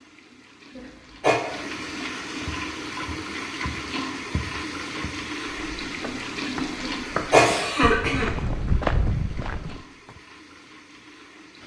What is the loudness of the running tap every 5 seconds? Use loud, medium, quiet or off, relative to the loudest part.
loud, loud, quiet.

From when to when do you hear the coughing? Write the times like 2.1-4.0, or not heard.
0.8-1.4, 6.8-8.3.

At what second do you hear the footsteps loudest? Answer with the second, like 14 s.
9 s.